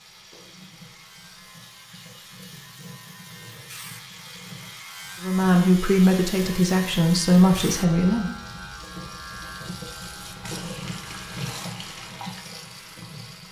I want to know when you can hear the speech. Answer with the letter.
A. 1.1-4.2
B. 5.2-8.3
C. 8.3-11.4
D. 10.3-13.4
B.